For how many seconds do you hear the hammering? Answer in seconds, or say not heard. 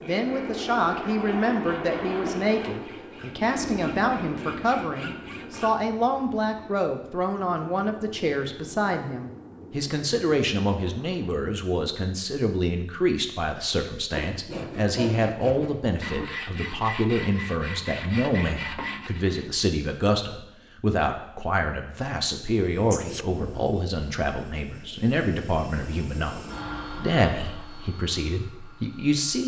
not heard.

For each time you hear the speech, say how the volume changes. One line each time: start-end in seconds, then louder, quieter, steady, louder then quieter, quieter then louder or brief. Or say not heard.
0.0-29.4 steady.